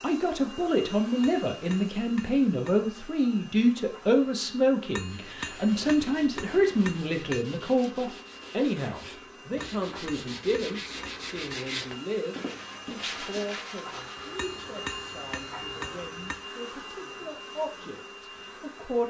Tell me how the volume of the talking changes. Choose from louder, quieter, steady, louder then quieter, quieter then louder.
quieter.